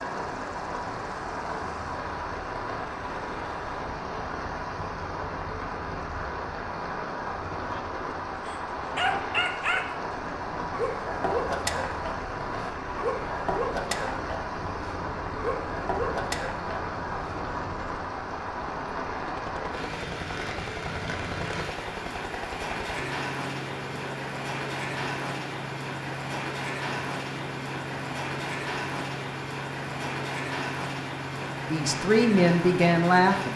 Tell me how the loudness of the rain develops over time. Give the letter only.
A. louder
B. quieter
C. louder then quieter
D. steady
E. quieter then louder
D.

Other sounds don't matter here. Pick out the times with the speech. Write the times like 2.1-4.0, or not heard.
31.6-33.5.